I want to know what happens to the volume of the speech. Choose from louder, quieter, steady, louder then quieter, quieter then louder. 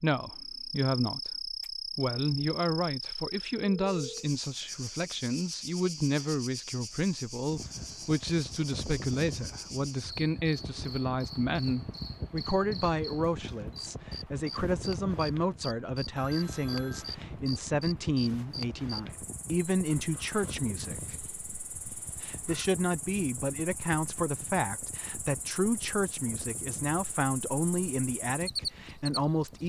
steady.